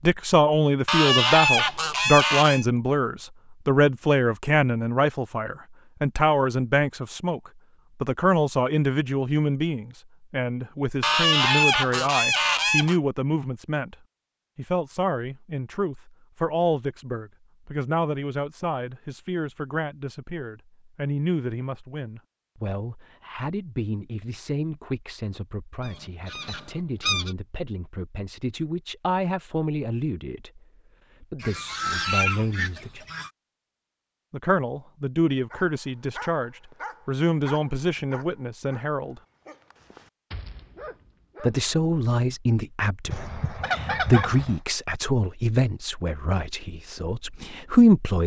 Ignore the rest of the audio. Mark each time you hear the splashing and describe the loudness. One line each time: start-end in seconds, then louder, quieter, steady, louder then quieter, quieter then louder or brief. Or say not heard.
not heard.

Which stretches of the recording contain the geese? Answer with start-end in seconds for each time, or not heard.
0.8-2.6, 11.0-12.9, 25.9-27.3, 31.4-33.3, 43.1-44.5.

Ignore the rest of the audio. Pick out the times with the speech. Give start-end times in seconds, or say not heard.
0.0-13.9, 14.6-30.6, 31.2-33.0, 34.3-39.2, 41.4-48.2.